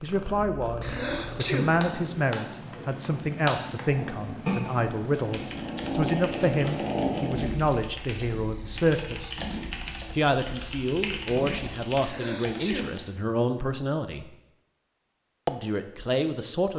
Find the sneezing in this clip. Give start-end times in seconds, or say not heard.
0.8-1.8, 12.0-13.0.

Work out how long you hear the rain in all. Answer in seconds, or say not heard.
not heard.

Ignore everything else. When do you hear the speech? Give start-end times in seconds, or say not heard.
0.0-9.3, 10.1-14.2, 15.4-16.7.